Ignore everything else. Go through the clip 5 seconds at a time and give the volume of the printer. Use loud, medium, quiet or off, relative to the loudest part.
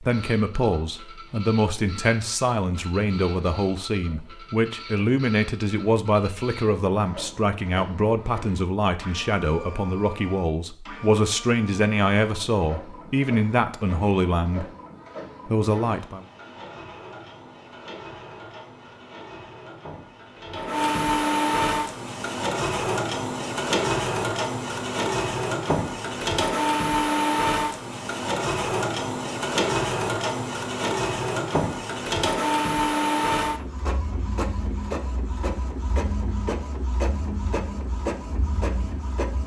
quiet, quiet, quiet, quiet, loud, loud, loud, medium.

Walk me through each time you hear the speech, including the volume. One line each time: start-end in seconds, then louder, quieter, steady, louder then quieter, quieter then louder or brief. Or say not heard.
0.0-14.7 steady
15.4-16.2 brief.